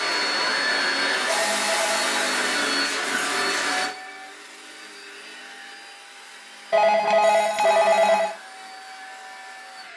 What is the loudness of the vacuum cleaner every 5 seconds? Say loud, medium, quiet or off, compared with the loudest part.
loud, quiet.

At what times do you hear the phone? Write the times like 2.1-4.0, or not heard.
1.2-2.4, 6.7-8.3.